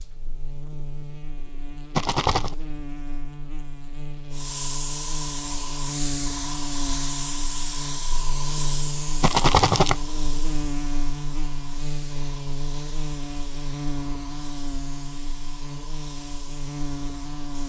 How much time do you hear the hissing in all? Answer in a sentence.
The hissing can be heard for 13 seconds in total.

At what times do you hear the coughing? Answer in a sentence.
You can't hear the coughing here.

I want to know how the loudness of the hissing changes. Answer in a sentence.
The volume of the hissing goes down.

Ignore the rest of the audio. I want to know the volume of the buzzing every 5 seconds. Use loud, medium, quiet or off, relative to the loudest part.
medium, loud, loud, loud.